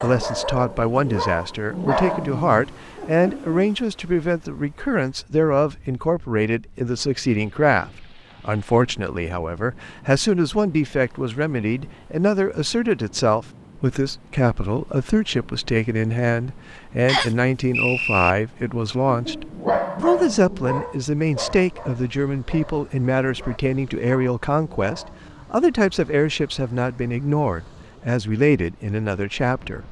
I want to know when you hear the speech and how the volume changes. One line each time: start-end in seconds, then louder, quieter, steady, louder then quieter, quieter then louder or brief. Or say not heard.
0.0-29.8 steady.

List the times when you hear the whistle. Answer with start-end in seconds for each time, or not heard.
17.1-18.4.